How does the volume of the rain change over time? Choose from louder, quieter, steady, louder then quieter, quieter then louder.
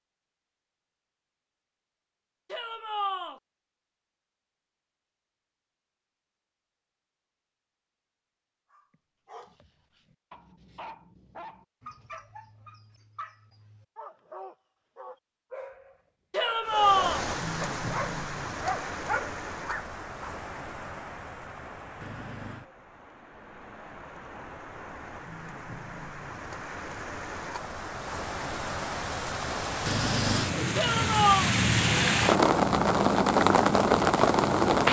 quieter then louder.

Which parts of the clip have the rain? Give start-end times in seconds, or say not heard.
16.6-34.8.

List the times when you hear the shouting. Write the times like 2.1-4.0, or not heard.
2.5-3.4, 16.3-17.2, 30.8-31.5.